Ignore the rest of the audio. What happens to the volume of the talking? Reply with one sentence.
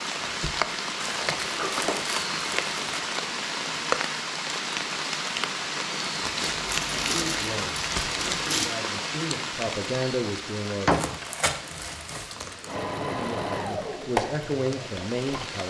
The volume of the talking goes up.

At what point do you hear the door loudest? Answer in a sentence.
The loudest moment of the door is at 11 seconds.